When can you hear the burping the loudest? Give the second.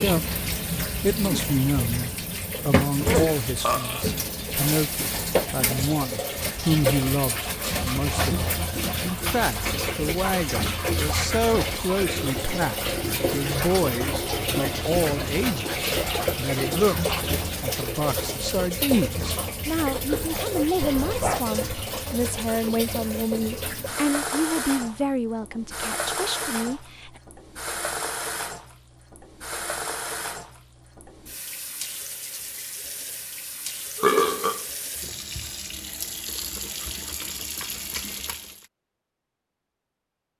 34 s.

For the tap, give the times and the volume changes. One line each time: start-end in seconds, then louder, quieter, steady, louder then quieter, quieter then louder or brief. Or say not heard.
0.0-38.6 quieter.